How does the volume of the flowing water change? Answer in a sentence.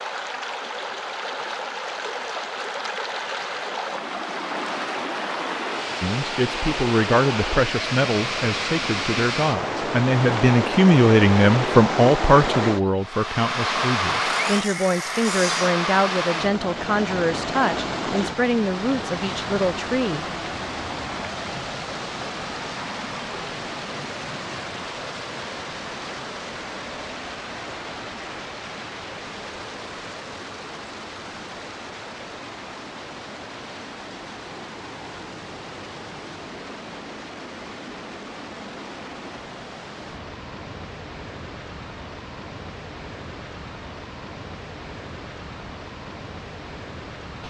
The loudness of the flowing water goes down.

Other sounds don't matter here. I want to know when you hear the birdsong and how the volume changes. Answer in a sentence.
You can't hear the birdsong here.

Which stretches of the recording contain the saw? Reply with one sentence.
You can hear the saw from 14.2 to 15.8 s.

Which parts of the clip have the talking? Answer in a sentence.
You can hear the talking from 6.0 to 20.2 s.